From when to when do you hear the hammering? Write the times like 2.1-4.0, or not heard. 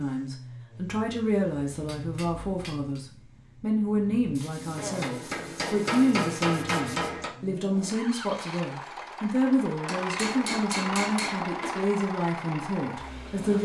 1.7-3.0, 4.8-7.3, 9.8-11.8.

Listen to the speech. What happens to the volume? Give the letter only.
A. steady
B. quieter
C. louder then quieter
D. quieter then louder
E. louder
A.